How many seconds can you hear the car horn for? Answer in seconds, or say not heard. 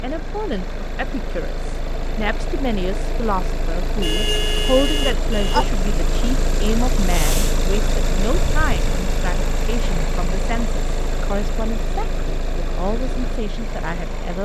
2 s.